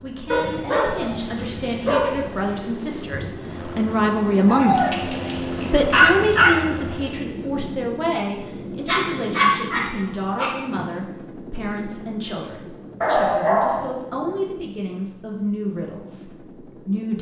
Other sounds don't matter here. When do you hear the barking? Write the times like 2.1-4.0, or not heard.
0.3-2.2, 4.5-6.5, 8.8-10.8, 13.0-13.9.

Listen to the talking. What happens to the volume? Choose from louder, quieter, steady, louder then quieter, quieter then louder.
louder then quieter.